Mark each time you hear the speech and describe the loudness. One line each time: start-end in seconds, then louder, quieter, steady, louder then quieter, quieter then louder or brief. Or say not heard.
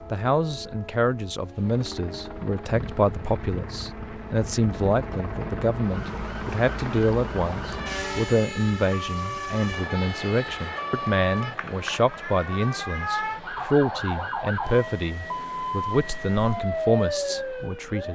0.1-18.1 steady.